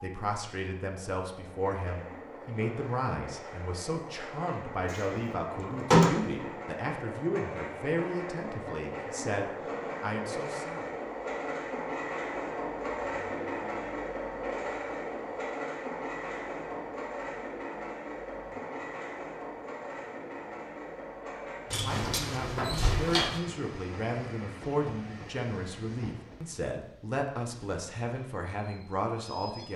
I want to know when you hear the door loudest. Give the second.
6 s.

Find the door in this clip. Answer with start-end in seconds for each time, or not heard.
4.9-6.5, 21.7-23.4.